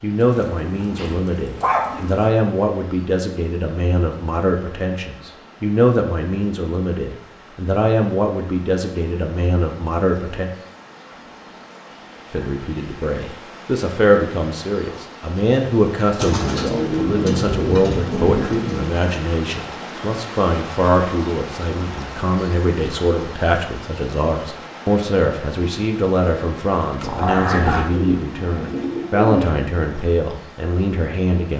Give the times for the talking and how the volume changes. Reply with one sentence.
You can hear the talking from 0.0 to 10.5 s, at a steady volume; and from 12.3 to 31.5 s, at a steady volume.